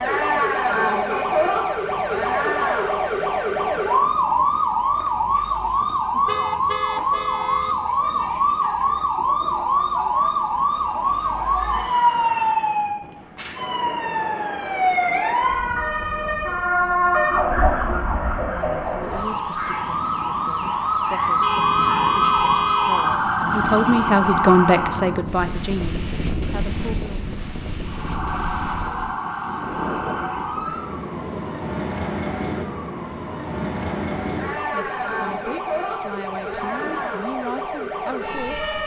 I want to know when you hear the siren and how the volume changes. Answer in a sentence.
The siren can be heard from 0.0 to 25.2 s, at a steady volume; and from 27.8 to 38.8 s, at a steady volume.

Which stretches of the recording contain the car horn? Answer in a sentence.
You can hear the car horn from 6.2 to 7.8 s and from 21.4 to 23.2 s.